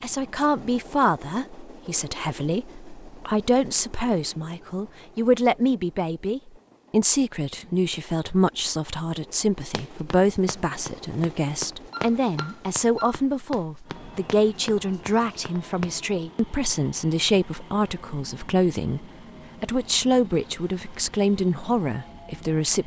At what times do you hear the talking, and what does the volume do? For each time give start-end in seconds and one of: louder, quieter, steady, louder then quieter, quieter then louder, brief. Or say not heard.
0.0-22.8 steady.